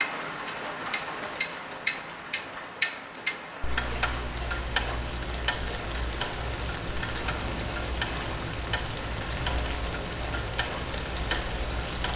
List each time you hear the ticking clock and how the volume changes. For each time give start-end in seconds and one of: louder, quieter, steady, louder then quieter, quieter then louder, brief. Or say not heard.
0.0-12.1 quieter.